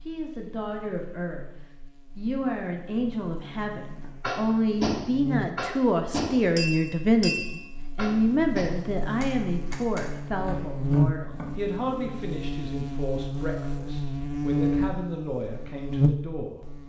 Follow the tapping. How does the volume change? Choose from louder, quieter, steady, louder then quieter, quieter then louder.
quieter.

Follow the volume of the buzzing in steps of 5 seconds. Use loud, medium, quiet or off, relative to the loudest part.
quiet, medium, loud, loud.